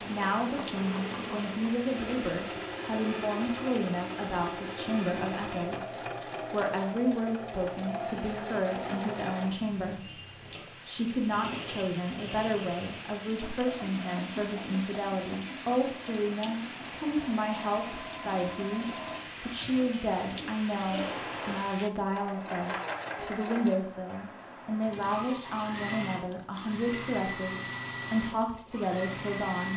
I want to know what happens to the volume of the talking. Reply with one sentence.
The loudness of the talking stays about the same.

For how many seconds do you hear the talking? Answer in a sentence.
The talking can be heard for 30 seconds in total.